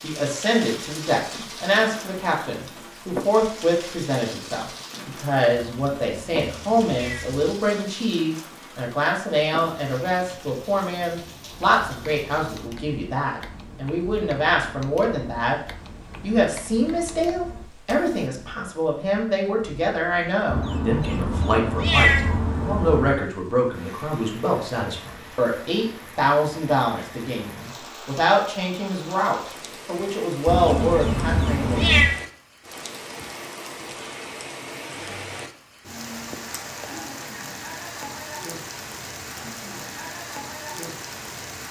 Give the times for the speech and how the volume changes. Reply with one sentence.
The speech can be heard from 0.0 to 15.6 s, at a steady volume; and from 16.2 to 31.8 s, at a steady volume.